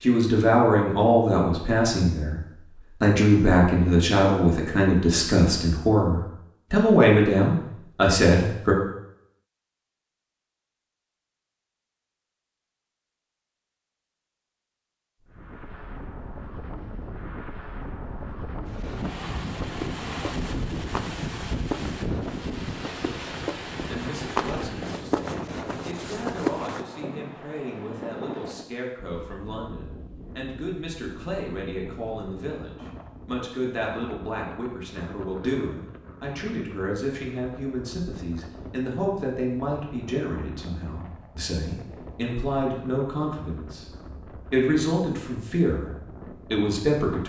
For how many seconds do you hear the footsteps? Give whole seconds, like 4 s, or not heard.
8 s.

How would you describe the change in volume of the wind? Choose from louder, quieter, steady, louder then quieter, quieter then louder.
quieter.